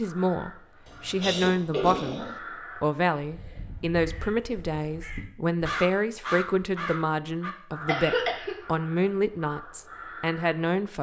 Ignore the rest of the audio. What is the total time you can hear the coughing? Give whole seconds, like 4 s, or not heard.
2 s.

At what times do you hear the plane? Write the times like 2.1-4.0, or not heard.
not heard.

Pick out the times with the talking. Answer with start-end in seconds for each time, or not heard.
0.0-10.9.